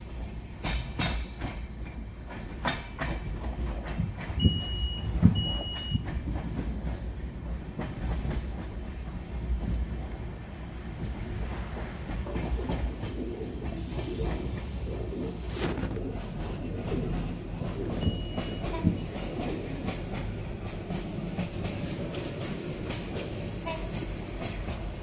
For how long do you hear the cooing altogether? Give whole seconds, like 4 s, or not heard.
8 s.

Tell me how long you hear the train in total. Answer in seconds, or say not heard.
25 s.